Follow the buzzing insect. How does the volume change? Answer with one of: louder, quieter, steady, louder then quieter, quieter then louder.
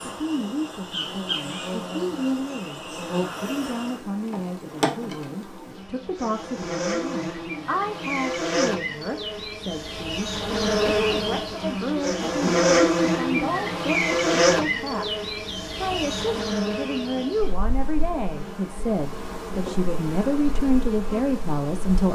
louder then quieter.